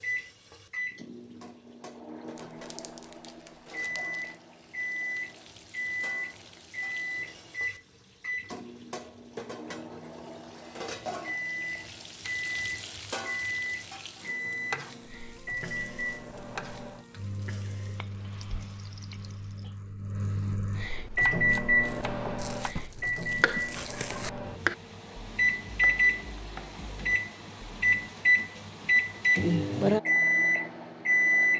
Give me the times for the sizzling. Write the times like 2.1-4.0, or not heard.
0.0-19.8.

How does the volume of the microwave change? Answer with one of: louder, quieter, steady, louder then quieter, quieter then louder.
louder.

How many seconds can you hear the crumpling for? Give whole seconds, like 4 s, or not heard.
4 s.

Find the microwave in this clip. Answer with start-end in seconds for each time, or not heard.
0.0-31.5.